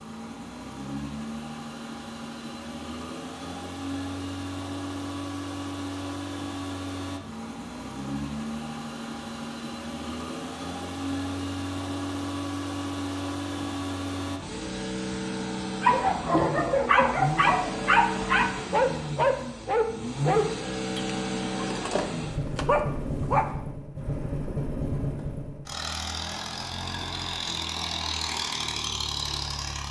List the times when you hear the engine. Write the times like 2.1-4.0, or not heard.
0.0-29.8.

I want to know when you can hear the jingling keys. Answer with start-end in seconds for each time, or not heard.
not heard.